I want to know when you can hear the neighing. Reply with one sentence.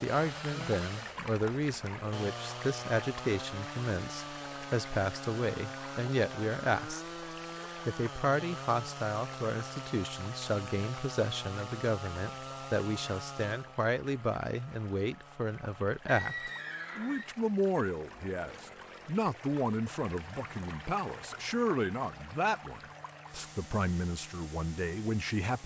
The neighing can be heard from 16.1 to 17.3 s.